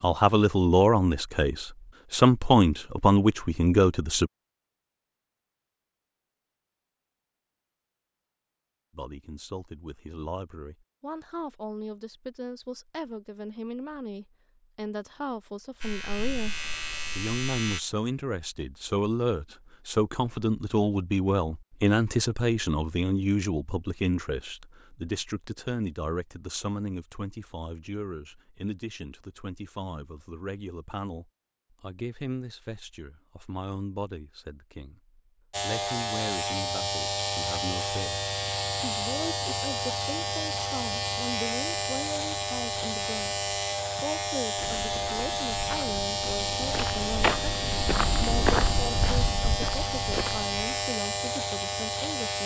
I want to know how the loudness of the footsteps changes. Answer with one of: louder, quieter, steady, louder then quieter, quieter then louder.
louder then quieter.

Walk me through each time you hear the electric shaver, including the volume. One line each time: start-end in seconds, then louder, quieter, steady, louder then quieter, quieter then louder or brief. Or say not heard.
15.8-17.8 brief
35.5-52.4 steady.